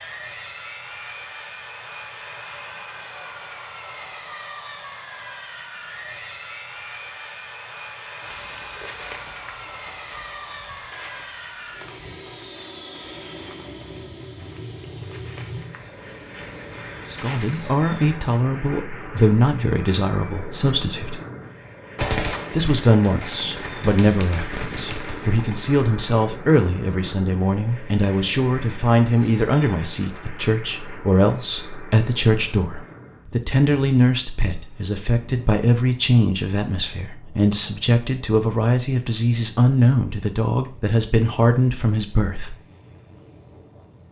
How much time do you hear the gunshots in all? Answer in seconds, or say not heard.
4 s.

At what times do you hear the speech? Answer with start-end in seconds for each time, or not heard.
17.1-21.2, 22.5-42.5.